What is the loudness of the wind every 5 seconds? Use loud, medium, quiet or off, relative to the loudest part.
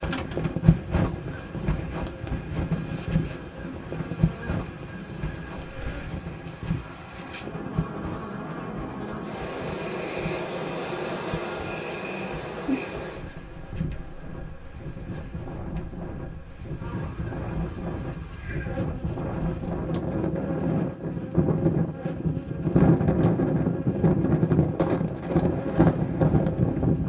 medium, quiet, quiet, medium, loud, loud.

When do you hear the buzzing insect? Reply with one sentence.
You can hear the buzzing insect from 0.0 to 27.0 s.